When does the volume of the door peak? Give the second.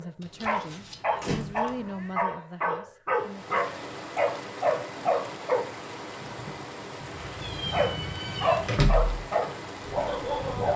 9 s.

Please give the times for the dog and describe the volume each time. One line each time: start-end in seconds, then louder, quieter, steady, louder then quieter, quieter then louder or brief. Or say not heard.
0.0-5.7 steady
7.7-10.7 brief.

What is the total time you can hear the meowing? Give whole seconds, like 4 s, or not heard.
4 s.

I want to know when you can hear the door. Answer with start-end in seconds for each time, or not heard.
1.2-1.8, 8.7-9.2.